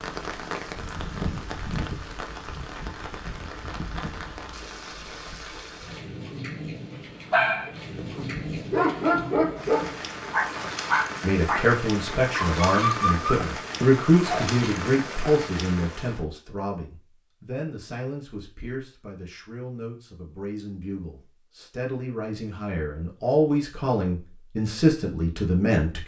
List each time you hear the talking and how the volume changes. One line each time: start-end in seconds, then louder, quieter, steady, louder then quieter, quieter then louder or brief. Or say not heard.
11.2-26.0 quieter then louder.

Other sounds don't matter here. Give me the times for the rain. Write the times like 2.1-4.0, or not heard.
0.0-16.2.